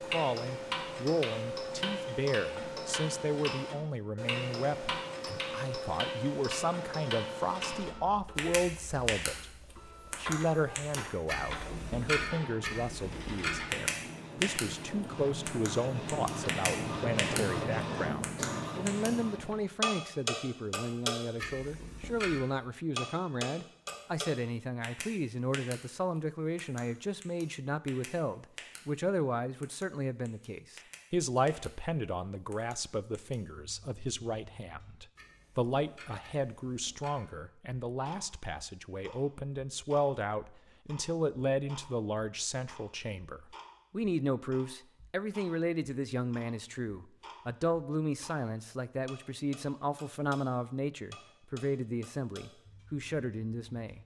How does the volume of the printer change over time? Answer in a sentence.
The volume of the printer goes up.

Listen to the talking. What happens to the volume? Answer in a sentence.
The loudness of the talking stays about the same.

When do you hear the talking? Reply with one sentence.
The talking can be heard from 0.0 to 9.4 s and from 10.2 to 54.0 s.